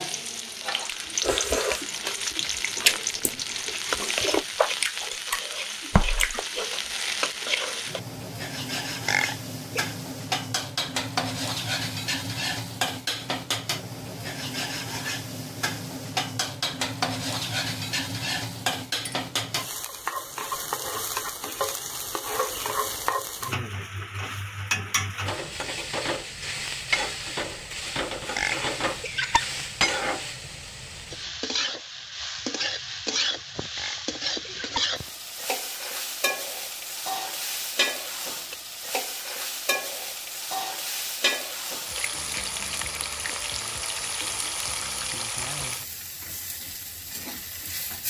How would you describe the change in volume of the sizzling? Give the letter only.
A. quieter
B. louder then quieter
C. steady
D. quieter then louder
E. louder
C.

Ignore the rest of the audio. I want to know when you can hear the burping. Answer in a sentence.
The burping can be heard from 9.1 to 9.9 s, from 28.4 to 29.4 s and from 33.8 to 34.9 s.